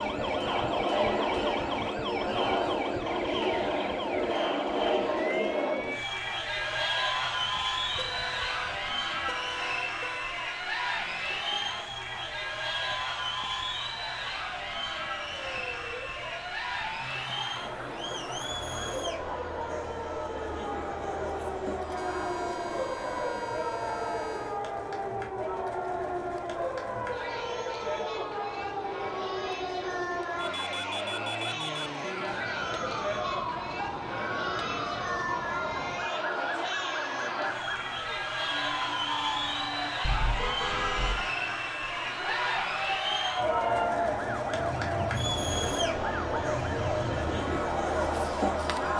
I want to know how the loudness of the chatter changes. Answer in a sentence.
The volume of the chatter goes down, then up.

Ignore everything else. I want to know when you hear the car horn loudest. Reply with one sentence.
The volume of the car horn peaks at 41 seconds.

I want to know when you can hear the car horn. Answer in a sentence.
The car horn can be heard from 8.0 to 10.3 s, from 21.9 to 24.6 s and from 40.0 to 41.3 s.